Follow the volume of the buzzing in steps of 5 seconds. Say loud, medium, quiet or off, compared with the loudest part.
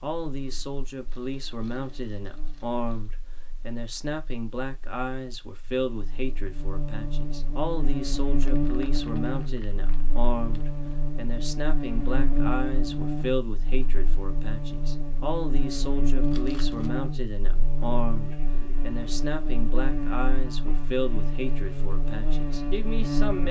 quiet, loud, loud, loud, loud.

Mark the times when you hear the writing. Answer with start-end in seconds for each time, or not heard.
not heard.